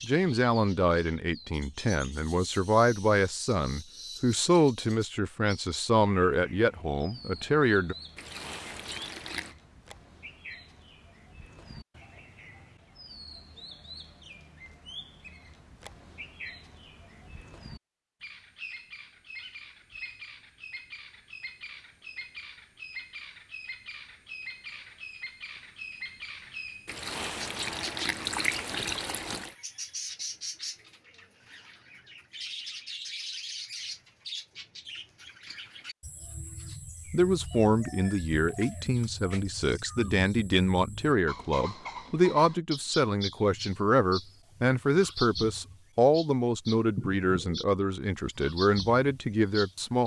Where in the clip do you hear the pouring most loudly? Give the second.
28 s.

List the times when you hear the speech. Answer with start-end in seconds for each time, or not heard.
0.0-8.0, 37.1-50.0.